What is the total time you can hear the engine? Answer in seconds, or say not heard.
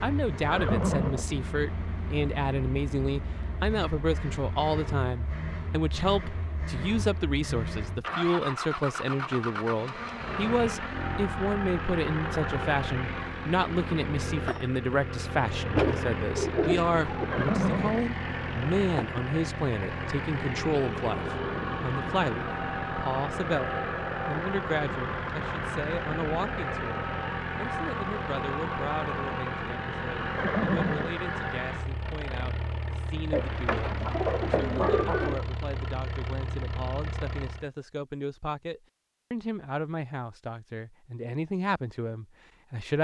38 s.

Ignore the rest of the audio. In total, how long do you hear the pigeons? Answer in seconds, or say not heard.
4 s.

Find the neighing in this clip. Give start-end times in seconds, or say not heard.
0.5-1.2, 17.3-18.1, 30.4-31.1.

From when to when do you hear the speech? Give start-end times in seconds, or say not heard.
0.0-42.9.